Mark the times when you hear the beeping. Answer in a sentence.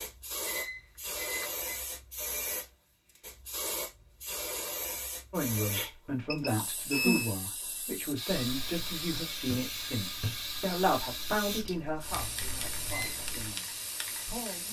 The beeping can be heard from 0.5 to 1.8 s, from 5.7 to 7.3 s and from 12.1 to 13.2 s.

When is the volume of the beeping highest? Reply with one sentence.
The volume of the beeping peaks at 7 seconds.